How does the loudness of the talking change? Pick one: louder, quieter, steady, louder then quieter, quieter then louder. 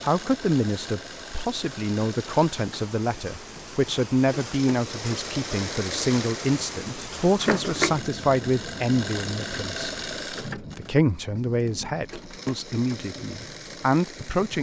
steady.